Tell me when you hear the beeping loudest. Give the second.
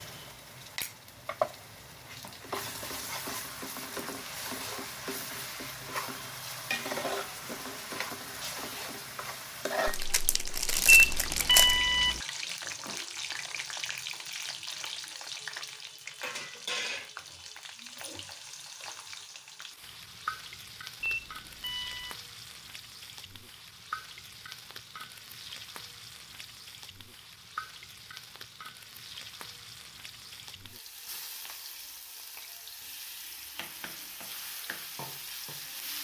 11 s.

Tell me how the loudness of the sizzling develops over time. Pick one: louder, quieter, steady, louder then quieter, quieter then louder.
quieter.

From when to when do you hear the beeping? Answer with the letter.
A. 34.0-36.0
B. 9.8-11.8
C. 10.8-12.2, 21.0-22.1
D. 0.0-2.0
C.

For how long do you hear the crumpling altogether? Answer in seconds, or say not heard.
2 s.